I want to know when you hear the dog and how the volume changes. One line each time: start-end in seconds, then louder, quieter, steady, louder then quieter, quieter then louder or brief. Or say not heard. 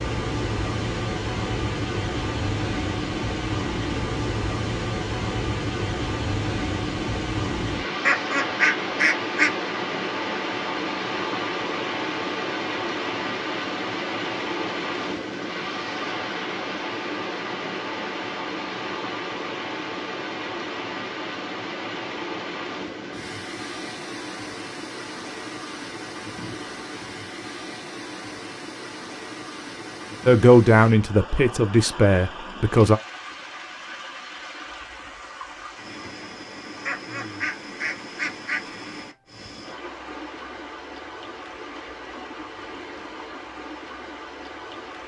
not heard.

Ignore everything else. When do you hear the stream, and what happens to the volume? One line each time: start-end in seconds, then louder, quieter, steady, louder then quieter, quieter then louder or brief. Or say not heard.
0.0-45.0 quieter.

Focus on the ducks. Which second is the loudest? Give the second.
9 s.